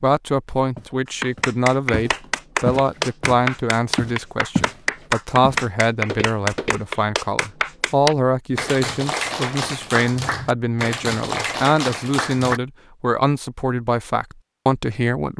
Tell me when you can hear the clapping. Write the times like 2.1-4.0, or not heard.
1.2-12.6.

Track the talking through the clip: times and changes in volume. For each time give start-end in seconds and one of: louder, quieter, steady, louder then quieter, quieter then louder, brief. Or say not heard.
0.0-15.3 steady.